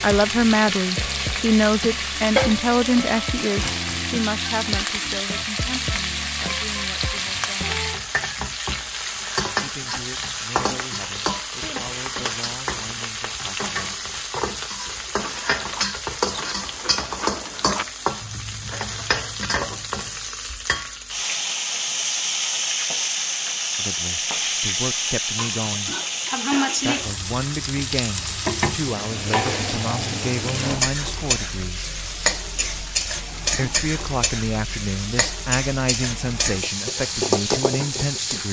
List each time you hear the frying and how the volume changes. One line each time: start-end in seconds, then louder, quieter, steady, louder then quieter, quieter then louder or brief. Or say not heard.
0.0-38.4 steady.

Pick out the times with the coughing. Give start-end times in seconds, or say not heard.
25.9-27.1.